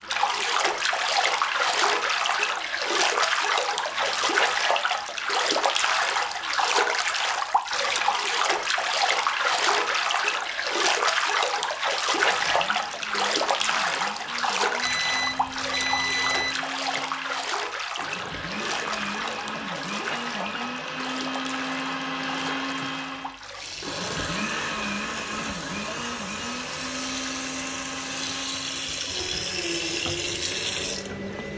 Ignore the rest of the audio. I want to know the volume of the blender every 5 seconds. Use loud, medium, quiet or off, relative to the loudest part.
medium, medium, medium, medium, loud, loud, medium.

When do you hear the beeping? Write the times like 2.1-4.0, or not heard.
14.8-16.6.